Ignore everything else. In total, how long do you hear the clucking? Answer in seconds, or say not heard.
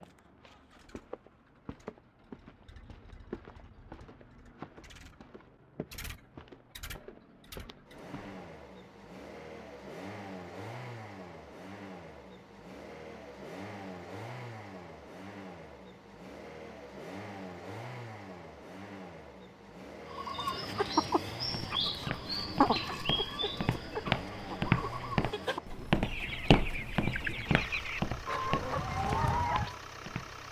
10 s.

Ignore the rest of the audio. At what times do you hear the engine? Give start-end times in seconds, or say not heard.
0.0-30.4.